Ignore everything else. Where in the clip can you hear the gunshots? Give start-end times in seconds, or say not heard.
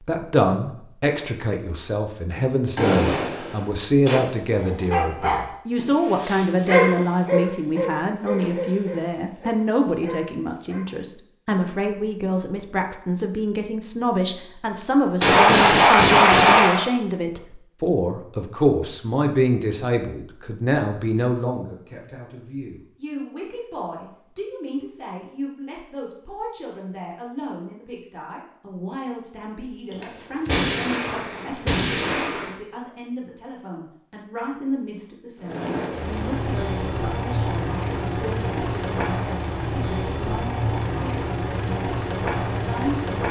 2.3-4.2, 15.2-16.9, 29.9-32.5.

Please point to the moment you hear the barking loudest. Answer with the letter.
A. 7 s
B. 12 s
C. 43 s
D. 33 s
A.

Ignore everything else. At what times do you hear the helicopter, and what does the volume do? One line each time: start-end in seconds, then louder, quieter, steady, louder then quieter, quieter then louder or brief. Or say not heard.
35.4-43.2 steady.